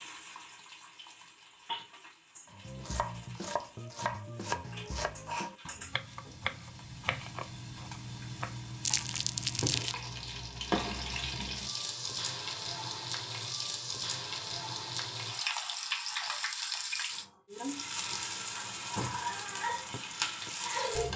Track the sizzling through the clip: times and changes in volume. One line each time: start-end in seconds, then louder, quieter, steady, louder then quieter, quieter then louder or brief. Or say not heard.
0.0-21.1 louder.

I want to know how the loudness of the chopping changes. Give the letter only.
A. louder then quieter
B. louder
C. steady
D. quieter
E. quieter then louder
D.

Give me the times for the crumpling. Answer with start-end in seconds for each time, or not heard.
8.8-9.9.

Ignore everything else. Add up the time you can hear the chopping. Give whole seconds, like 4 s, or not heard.
8 s.